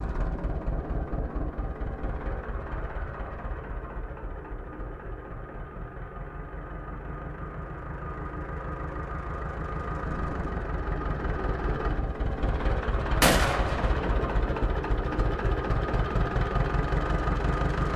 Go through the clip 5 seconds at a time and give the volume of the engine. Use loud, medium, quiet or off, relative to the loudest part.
medium, medium, loud, loud.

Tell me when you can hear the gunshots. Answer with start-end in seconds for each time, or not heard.
13.2-14.8.